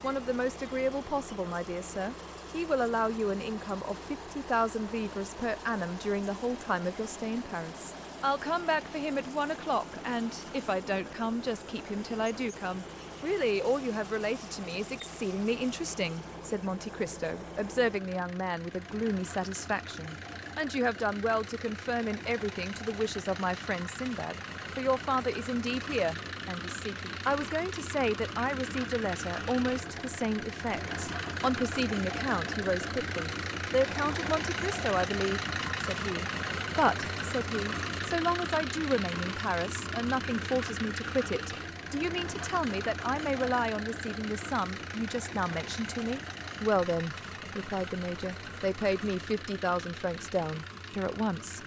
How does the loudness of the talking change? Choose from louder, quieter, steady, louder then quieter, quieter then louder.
steady.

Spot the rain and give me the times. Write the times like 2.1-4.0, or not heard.
not heard.